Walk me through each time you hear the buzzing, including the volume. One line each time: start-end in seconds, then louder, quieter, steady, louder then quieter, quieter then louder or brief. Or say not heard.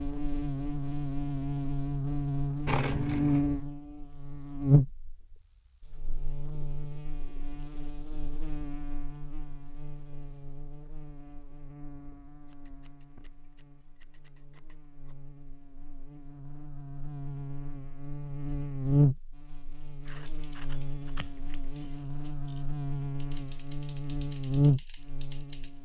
0.0-25.7 quieter then louder.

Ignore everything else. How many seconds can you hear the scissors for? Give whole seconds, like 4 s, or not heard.
5 s.